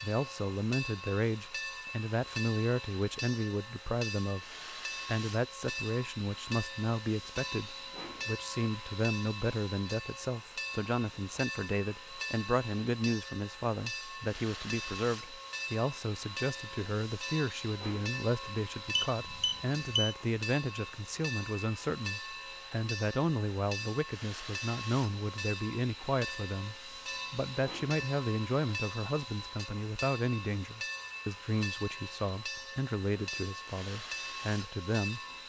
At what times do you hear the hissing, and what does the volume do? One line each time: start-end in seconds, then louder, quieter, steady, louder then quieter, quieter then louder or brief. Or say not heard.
0.0-35.4 steady.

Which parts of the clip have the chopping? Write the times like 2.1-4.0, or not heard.
not heard.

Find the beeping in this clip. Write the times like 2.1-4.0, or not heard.
18.9-20.1.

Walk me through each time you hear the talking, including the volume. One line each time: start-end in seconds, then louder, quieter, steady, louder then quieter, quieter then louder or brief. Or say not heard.
0.0-4.5 steady
5.0-35.2 steady.